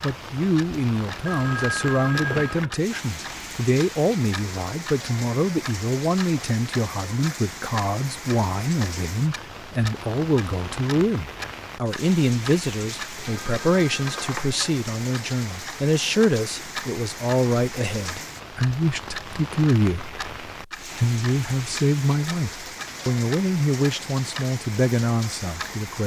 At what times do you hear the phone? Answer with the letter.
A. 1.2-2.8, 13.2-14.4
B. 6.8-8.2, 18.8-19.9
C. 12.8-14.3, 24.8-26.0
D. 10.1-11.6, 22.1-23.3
A.